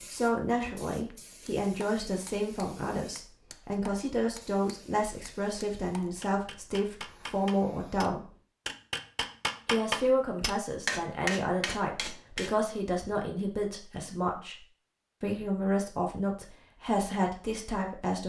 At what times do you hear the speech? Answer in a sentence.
You can hear the speech from 0.1 to 8.3 s, from 9.7 to 14.6 s and from 15.2 to 18.2 s.